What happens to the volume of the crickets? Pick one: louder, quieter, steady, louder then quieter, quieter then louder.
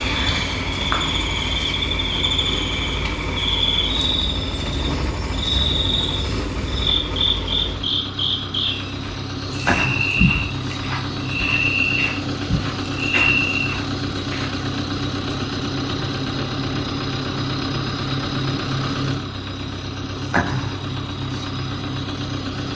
steady.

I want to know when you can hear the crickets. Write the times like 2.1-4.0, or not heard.
0.0-14.5.